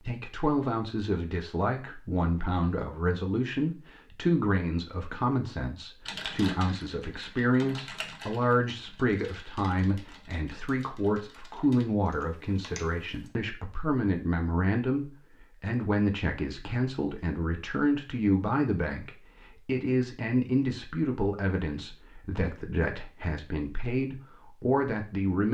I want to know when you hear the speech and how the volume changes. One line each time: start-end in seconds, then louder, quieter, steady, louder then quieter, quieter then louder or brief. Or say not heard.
0.0-25.4 steady.